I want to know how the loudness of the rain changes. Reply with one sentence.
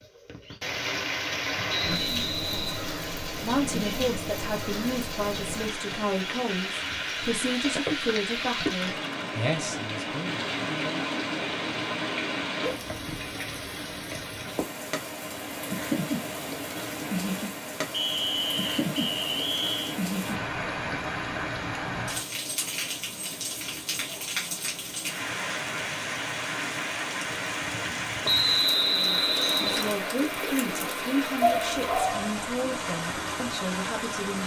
The volume of the rain stays about the same.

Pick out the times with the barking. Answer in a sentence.
The barking can be heard from 31.4 to 32.3 s.